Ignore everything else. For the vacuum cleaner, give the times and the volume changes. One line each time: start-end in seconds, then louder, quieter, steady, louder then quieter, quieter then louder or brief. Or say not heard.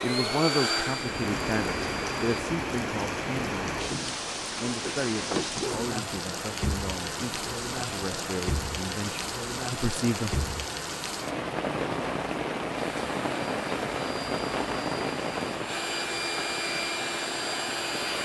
0.0-2.5 brief
12.8-18.1 louder.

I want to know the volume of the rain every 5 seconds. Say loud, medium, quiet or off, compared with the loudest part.
loud, loud, loud, medium.